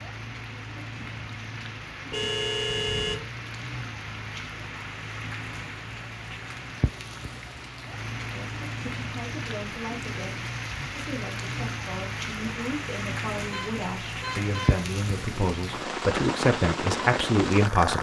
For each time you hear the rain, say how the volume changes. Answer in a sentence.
The rain can be heard from 0.0 to 17.9 s, getting louder.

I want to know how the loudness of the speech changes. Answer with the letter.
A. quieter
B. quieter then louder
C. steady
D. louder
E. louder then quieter
D.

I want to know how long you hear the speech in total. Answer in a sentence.
You can hear the speech for 10 seconds altogether.